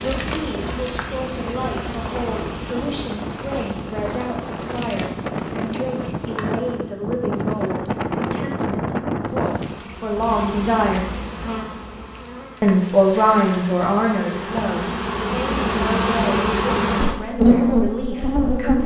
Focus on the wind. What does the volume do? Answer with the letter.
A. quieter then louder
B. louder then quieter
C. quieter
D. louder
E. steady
D.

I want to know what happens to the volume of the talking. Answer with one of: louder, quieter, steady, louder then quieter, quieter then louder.
louder then quieter.